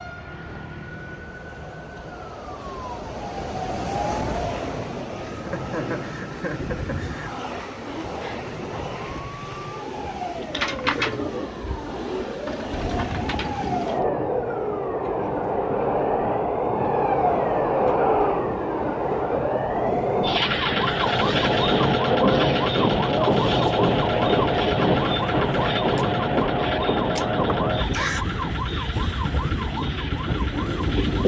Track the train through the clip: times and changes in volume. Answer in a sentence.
You can hear the train from 0.0 to 31.2 s, getting louder.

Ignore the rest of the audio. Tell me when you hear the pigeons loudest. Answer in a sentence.
The volume of the pigeons peaks at 11 seconds.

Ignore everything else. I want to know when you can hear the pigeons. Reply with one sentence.
The pigeons can be heard from 10.3 to 14.1 s.